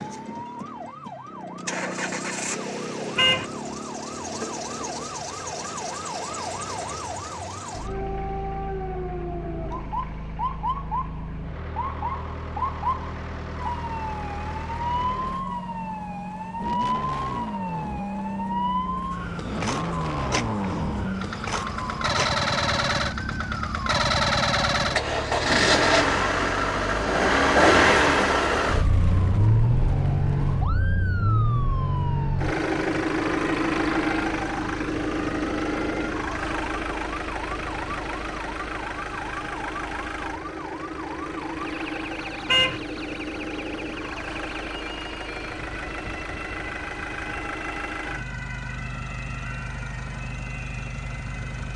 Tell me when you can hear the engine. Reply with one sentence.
You can hear the engine from 0.0 to 51.7 s.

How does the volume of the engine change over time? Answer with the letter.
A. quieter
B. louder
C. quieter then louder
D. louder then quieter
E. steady
D.